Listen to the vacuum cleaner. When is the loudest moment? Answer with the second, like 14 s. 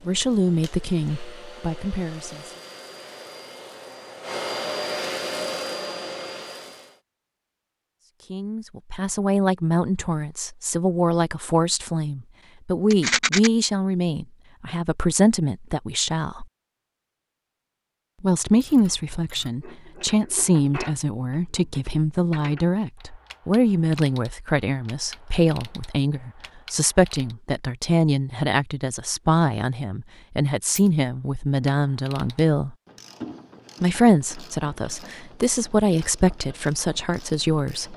5 s.